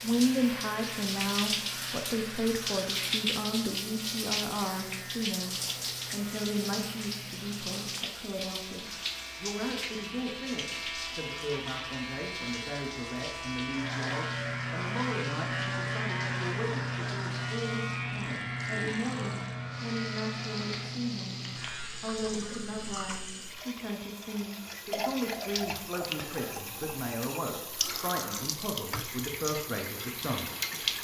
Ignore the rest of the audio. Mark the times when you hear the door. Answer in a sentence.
The door can't be heard in this clip.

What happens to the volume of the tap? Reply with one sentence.
The volume of the tap goes down, then up.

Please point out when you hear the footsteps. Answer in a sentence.
You can't hear the footsteps here.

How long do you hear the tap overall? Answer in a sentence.
You can hear the tap for 31 seconds altogether.